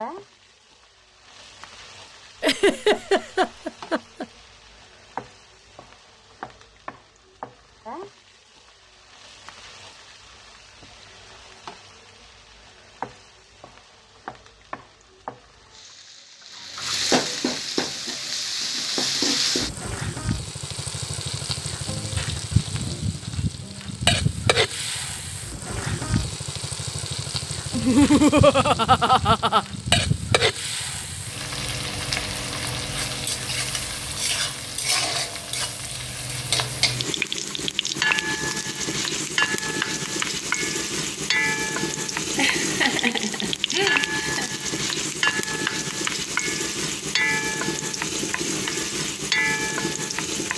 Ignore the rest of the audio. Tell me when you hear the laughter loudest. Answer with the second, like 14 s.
28 s.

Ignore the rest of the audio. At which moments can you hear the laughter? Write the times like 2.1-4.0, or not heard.
2.4-4.2, 27.8-29.6, 42.4-44.5.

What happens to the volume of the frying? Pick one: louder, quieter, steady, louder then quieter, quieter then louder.
louder.